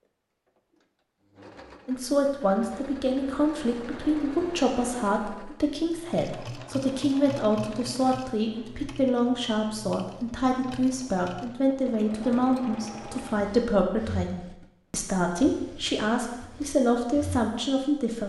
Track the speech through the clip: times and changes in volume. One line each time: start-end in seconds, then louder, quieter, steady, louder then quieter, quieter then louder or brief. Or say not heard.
1.9-18.2 steady.